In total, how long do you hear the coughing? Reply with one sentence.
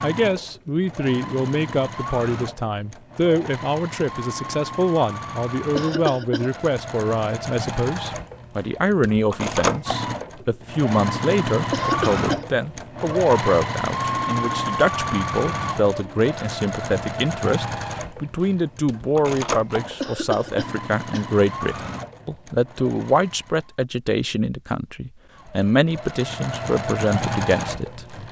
You can hear the coughing for 3 seconds altogether.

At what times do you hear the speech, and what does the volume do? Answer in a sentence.
You can hear the speech from 0.0 to 28.2 s, at a steady volume.